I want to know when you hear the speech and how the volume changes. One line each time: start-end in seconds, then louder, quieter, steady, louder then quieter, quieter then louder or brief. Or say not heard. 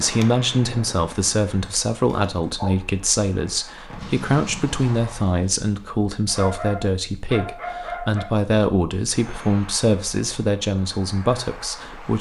0.0-12.1 steady.